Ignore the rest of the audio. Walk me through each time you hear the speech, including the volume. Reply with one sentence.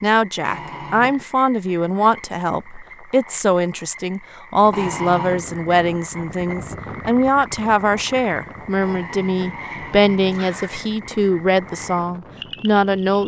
You can hear the speech from 0.0 to 13.2 s, at a steady volume.